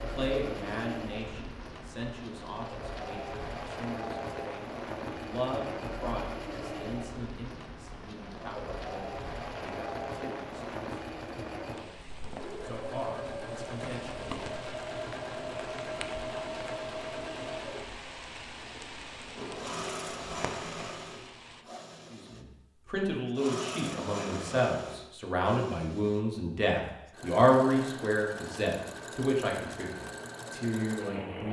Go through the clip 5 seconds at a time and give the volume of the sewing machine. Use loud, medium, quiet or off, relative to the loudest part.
loud, loud, loud, loud, loud, medium, loud.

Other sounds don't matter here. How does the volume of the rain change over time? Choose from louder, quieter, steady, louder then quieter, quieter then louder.
steady.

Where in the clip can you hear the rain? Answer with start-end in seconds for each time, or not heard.
0.0-21.6.